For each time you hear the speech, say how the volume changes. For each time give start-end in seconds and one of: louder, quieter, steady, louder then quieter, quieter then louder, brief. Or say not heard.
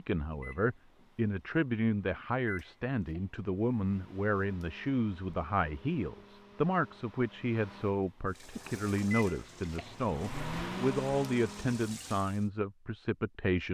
0.0-13.6 steady.